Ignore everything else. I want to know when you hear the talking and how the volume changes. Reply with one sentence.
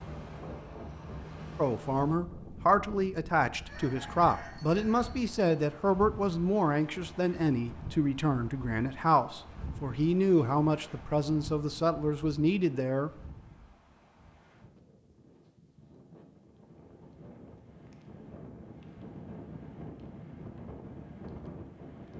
The talking can be heard from 1.6 to 13.1 s, at a steady volume.